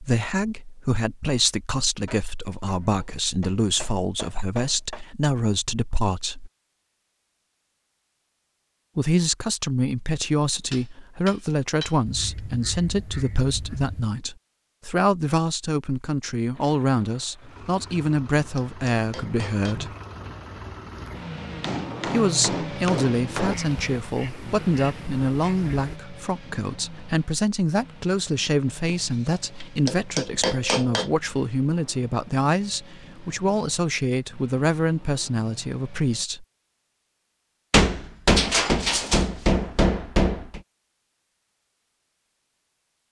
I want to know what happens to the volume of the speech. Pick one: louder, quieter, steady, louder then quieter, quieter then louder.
steady.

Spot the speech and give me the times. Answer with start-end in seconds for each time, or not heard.
0.0-6.5, 8.9-19.9, 22.1-36.5.